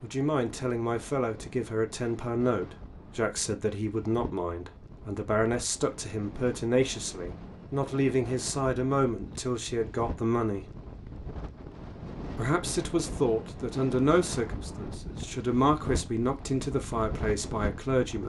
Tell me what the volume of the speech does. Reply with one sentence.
The volume of the speech stays about the same.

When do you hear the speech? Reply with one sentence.
You can hear the speech from 0.0 to 10.8 s and from 12.3 to 18.2 s.